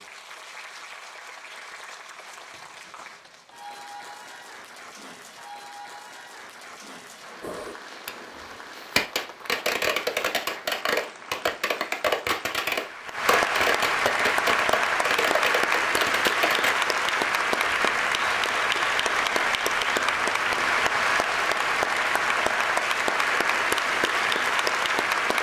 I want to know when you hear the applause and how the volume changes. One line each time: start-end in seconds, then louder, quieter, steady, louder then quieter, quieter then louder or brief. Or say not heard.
0.0-25.3 louder.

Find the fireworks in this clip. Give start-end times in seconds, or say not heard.
7.4-16.8.